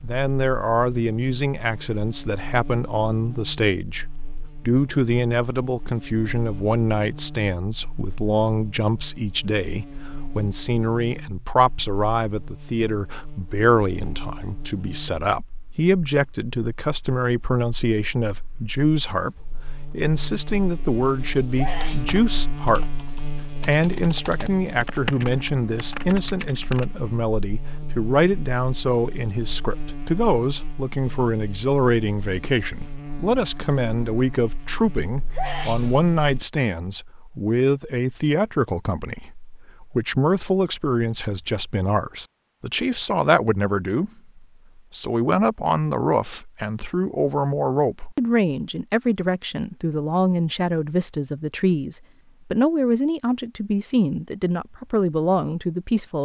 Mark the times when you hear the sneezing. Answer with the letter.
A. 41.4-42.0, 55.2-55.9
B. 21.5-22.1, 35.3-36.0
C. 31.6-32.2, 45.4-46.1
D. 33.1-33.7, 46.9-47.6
B.